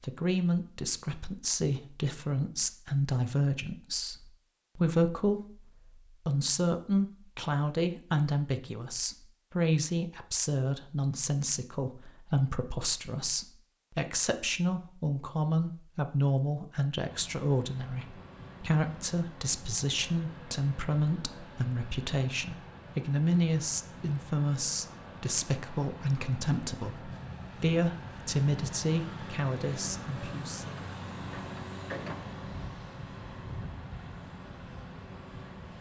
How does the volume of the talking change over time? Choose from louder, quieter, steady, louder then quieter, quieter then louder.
steady.